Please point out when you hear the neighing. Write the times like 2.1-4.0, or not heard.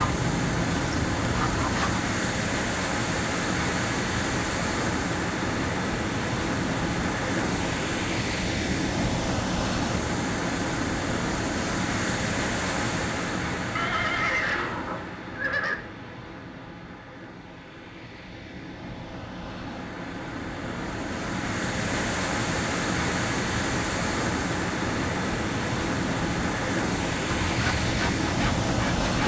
13.8-15.8.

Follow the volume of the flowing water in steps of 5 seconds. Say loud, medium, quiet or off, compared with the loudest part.
loud, loud, loud, quiet, loud, loud.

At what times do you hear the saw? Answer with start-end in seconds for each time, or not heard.
0.0-2.0, 27.2-29.2.